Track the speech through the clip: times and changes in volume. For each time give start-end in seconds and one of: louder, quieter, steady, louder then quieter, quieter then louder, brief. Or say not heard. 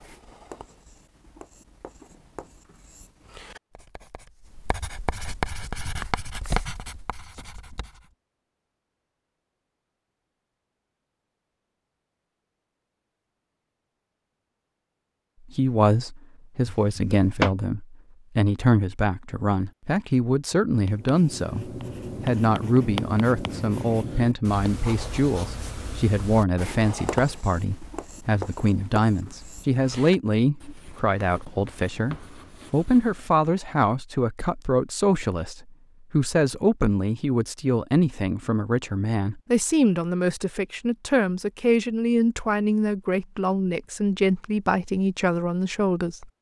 15.5-46.3 steady.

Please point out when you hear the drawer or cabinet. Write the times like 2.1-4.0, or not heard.
16.6-17.6.